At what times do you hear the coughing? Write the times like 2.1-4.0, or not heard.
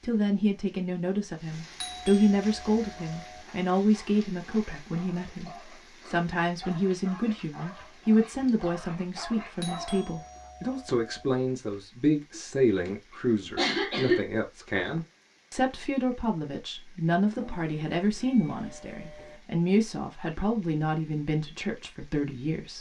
12.3-14.2.